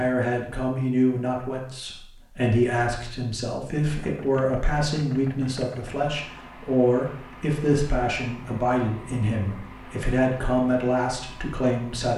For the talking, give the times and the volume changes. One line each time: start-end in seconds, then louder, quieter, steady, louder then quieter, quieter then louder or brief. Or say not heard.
0.0-12.1 steady.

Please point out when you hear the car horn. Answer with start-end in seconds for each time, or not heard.
not heard.